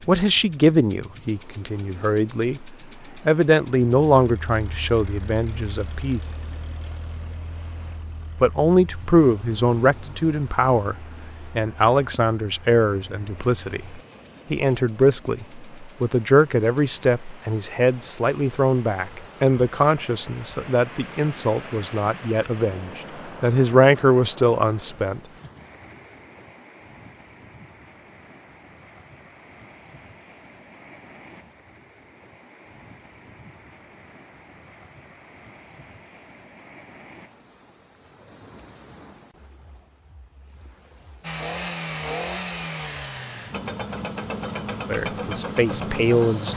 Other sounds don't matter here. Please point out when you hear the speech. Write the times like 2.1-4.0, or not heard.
0.1-6.2, 8.4-25.2, 44.9-46.5.